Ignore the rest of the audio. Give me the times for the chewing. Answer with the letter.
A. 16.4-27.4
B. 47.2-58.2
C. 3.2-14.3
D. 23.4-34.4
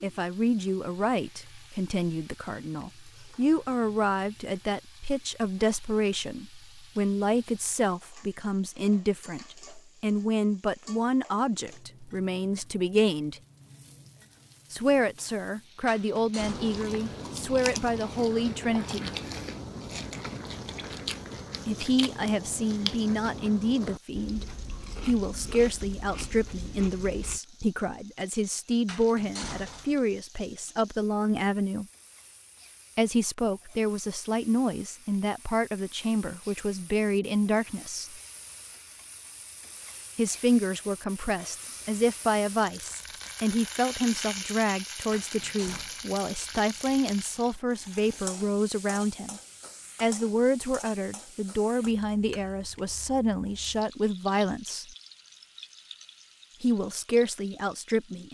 A.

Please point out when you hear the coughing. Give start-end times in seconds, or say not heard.
not heard.